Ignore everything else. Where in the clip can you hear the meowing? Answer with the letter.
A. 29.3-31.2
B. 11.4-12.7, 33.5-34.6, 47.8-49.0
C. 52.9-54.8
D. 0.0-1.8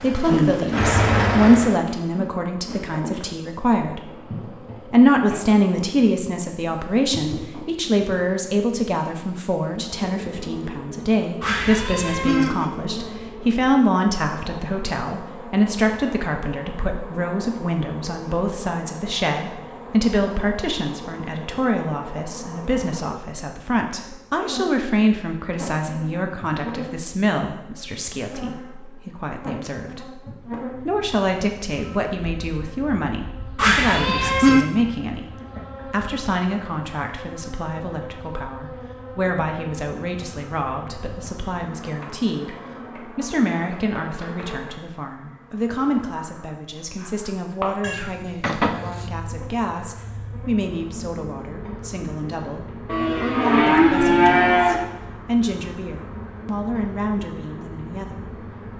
B.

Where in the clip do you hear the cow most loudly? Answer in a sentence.
The loudest moment of the cow is at 54 seconds.